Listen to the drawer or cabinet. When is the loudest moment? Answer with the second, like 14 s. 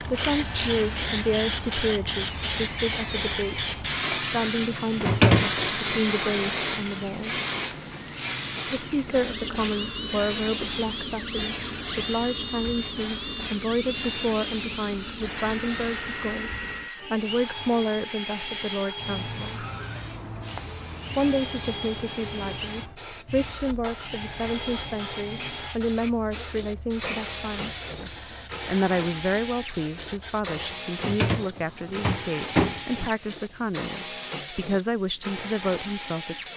5 s.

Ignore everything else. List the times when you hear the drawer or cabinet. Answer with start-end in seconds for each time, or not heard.
5.0-6.0, 30.9-33.1.